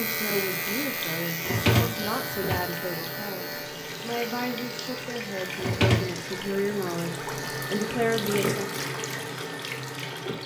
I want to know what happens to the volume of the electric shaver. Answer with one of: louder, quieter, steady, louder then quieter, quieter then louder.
quieter.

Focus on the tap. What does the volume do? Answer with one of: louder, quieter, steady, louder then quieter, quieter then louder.
louder.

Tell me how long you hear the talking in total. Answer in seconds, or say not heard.
9 s.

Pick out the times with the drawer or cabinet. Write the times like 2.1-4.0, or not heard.
1.4-2.6, 5.6-6.2.